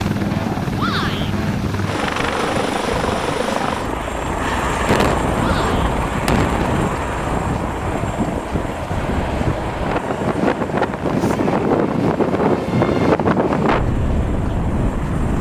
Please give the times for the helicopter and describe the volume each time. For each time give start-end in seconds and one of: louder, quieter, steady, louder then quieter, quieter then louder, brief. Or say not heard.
0.0-15.3 quieter.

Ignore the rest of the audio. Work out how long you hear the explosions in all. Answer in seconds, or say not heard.
2 s.